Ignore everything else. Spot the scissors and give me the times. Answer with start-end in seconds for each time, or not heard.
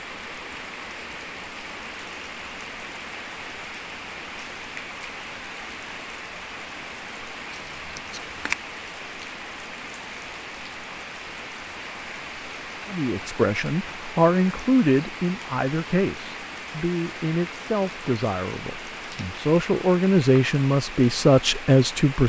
7.5-8.6.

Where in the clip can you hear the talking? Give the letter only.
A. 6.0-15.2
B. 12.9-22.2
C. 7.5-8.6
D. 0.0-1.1
B.